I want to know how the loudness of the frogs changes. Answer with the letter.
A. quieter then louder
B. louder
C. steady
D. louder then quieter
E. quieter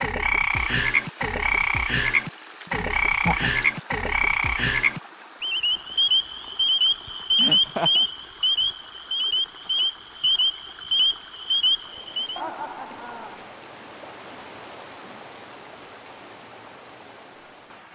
C.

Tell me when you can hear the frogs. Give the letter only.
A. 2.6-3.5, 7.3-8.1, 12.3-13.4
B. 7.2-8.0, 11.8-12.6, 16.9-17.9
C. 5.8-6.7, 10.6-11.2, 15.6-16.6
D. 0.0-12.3
D.